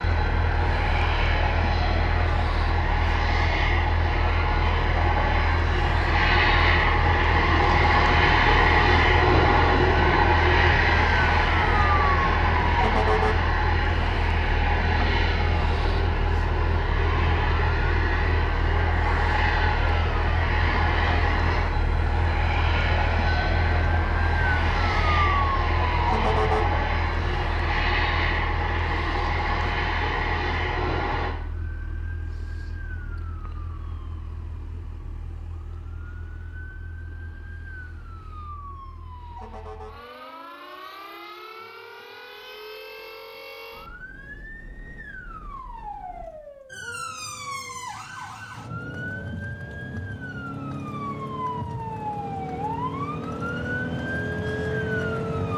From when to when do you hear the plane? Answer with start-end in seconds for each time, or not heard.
0.0-31.4.